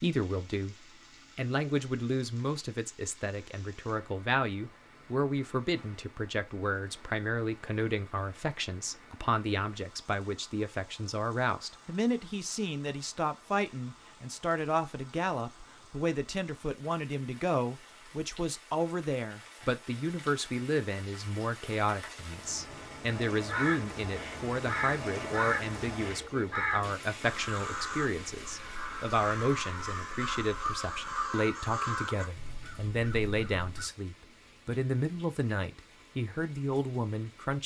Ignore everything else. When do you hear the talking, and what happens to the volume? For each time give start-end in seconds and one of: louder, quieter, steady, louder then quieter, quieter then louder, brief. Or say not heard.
0.0-37.6 steady.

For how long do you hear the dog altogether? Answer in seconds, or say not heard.
not heard.